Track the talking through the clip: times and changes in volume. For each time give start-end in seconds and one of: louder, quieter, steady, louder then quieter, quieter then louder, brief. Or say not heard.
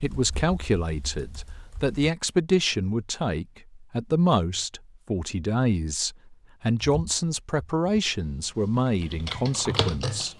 0.0-10.3 steady.